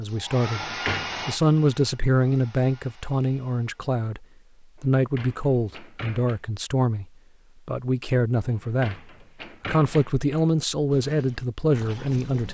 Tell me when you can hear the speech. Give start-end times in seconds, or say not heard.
0.0-0.7, 1.2-7.0, 7.7-8.9, 9.7-12.4.